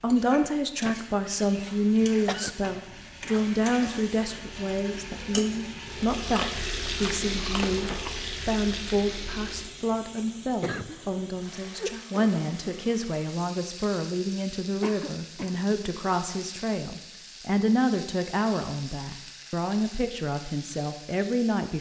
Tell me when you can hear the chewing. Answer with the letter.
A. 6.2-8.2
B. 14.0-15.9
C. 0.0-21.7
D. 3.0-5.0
A.